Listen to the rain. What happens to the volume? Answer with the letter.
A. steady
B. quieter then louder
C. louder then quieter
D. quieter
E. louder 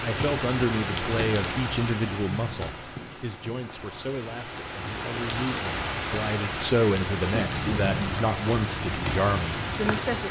B.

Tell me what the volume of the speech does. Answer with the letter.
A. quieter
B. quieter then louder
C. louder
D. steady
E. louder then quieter
B.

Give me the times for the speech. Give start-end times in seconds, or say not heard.
0.0-10.2.